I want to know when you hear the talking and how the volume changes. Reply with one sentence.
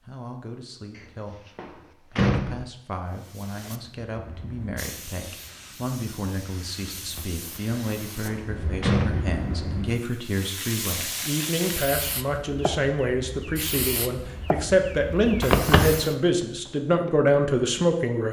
You can hear the talking from 0.0 to 18.2 s, getting louder.